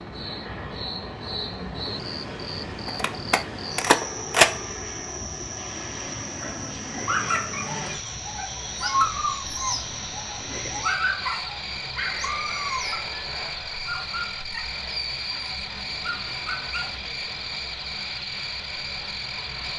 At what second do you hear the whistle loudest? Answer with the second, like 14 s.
12 s.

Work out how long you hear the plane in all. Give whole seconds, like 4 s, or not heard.
20 s.